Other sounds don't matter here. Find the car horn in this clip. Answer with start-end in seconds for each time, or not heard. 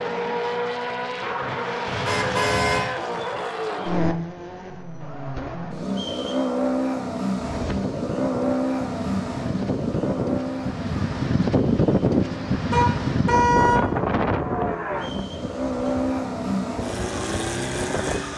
1.9-2.9, 12.7-13.8.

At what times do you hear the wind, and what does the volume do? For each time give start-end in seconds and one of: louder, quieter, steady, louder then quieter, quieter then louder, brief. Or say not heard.
7.3-18.3 louder then quieter.